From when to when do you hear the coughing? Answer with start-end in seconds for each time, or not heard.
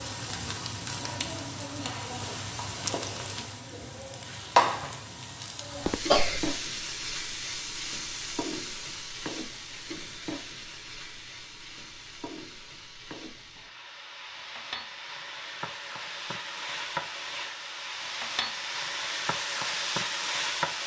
5.8-6.5.